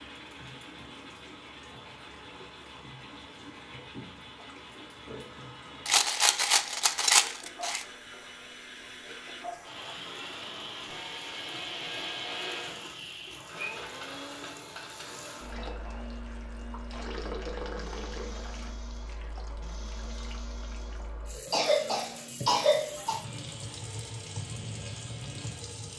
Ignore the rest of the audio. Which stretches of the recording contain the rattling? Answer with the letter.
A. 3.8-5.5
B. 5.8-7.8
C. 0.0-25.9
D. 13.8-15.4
B.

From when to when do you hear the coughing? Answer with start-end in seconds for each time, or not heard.
21.5-23.2.